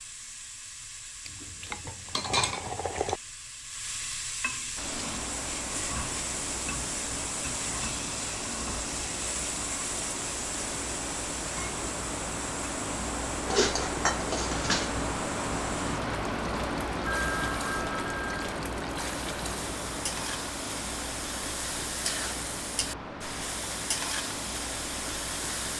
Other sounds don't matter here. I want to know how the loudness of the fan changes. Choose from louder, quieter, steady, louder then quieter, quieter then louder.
louder then quieter.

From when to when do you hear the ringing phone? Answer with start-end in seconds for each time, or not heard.
17.1-18.4.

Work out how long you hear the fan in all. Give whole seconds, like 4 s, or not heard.
21 s.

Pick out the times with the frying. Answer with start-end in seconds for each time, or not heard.
0.0-25.7.